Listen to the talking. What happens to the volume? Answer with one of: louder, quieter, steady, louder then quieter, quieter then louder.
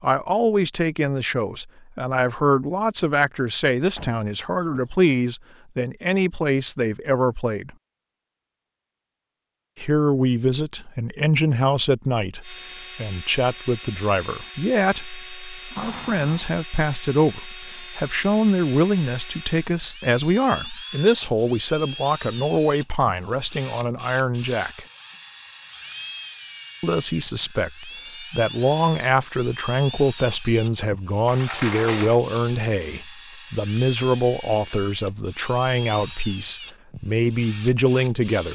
steady.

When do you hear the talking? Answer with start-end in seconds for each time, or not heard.
0.0-7.7, 9.8-24.9, 26.8-38.4.